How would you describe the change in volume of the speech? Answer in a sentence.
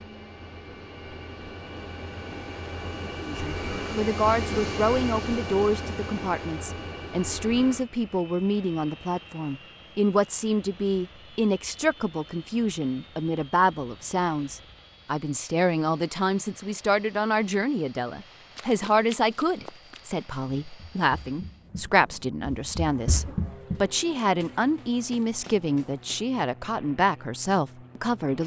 The volume of the speech stays about the same.